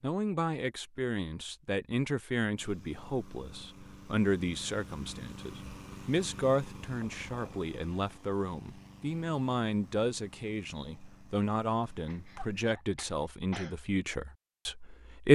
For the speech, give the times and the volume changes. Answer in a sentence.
You can hear the speech from 0.0 to 15.3 s, at a steady volume.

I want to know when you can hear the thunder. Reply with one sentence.
You can't hear the thunder here.